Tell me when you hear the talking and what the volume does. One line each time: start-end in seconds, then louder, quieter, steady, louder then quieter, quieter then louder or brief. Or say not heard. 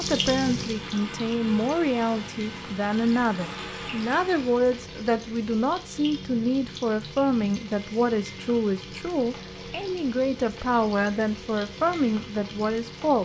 0.0-13.2 steady.